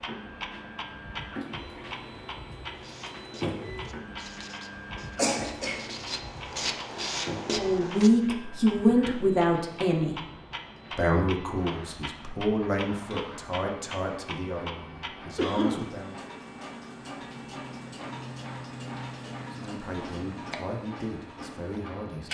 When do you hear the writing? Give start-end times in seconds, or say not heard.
2.7-8.1.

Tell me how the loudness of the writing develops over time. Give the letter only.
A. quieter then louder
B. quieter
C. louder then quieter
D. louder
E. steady
D.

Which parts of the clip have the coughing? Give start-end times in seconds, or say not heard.
5.2-5.9, 15.3-15.8.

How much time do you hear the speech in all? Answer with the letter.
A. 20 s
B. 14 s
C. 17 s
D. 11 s
D.